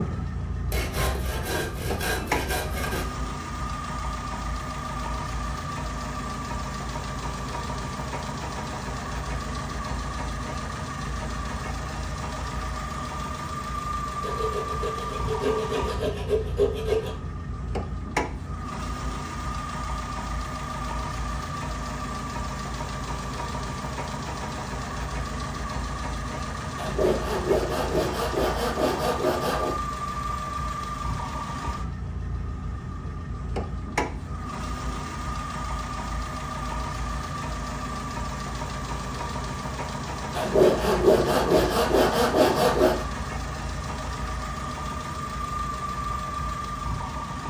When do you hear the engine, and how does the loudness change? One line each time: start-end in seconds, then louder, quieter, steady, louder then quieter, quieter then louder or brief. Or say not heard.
0.0-47.4 steady.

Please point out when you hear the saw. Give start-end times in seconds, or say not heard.
0.7-3.0, 14.2-17.1, 26.8-29.8, 40.4-43.0.